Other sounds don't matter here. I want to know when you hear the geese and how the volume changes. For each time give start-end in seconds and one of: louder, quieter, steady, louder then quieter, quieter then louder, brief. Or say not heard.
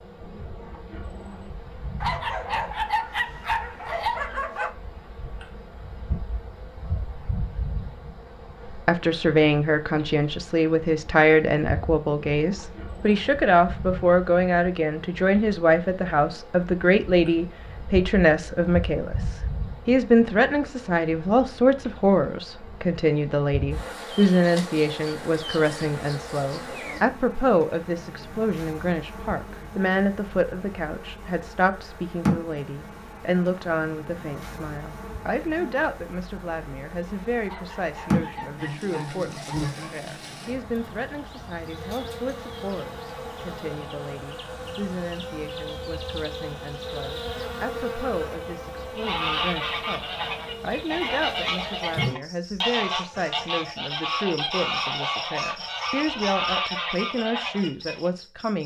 49.0-58.1 steady.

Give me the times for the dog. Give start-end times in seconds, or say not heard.
2.0-4.8, 37.5-40.0.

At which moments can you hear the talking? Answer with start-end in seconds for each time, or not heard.
8.7-58.6.